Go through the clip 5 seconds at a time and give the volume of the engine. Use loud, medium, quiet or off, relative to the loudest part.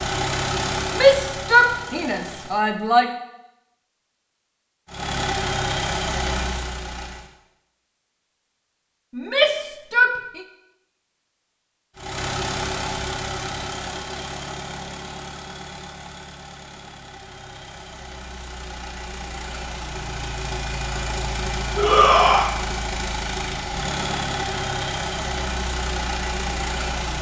loud, loud, loud, medium, loud, loud.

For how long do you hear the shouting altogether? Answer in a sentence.
The shouting can be heard for 4 seconds in total.